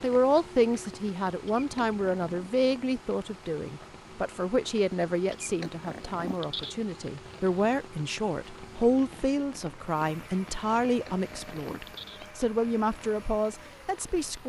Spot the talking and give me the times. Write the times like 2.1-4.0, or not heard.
0.0-14.4.